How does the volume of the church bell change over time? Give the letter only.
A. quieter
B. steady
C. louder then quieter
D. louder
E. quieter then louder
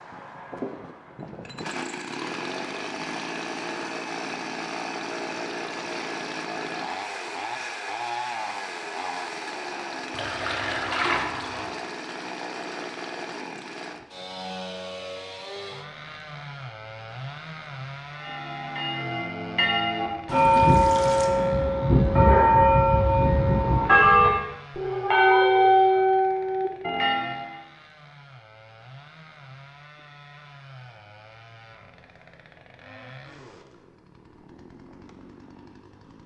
D.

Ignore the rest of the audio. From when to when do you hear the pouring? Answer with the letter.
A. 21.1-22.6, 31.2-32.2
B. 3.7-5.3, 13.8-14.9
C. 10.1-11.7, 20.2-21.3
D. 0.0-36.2
C.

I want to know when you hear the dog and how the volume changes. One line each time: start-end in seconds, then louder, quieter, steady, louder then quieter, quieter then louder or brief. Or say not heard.
not heard.